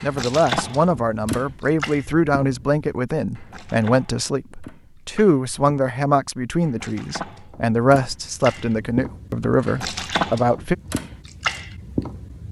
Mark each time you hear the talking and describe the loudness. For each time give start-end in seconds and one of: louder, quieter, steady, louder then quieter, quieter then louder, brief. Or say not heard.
0.0-10.8 steady.